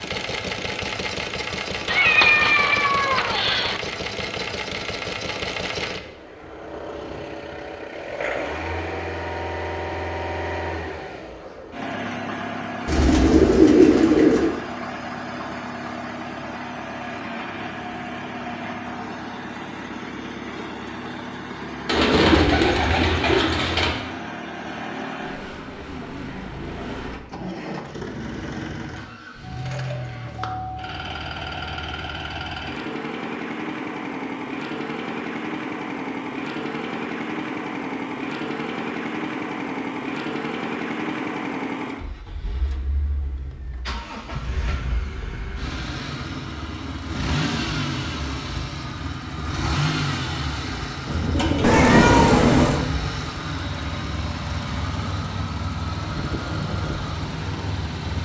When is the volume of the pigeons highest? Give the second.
14 s.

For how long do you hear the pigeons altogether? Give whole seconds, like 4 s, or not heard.
6 s.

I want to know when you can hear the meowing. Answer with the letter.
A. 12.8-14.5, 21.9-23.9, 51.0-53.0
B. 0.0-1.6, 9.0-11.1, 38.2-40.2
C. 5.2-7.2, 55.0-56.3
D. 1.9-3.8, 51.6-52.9
D.